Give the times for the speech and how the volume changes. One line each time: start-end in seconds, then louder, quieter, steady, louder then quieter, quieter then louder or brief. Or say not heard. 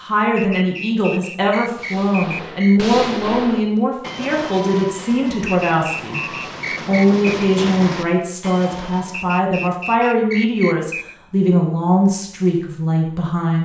0.0-13.6 steady.